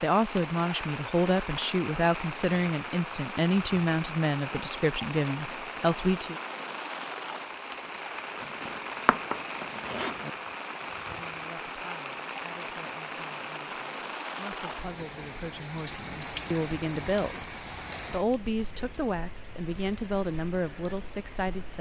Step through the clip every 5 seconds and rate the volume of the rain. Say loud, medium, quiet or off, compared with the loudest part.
loud, loud, loud, loud, medium.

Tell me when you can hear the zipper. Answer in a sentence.
The zipper can be heard from 8.3 to 10.3 s.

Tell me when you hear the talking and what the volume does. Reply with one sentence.
The talking can be heard from 0.0 to 6.3 s, at a steady volume; and from 10.9 to 21.7 s, getting louder.